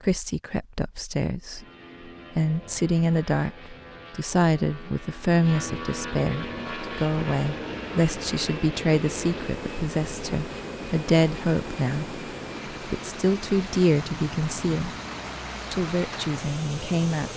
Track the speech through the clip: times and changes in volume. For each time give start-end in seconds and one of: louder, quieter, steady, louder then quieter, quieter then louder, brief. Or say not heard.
0.0-1.6 brief
2.4-14.9 steady
15.7-17.3 brief.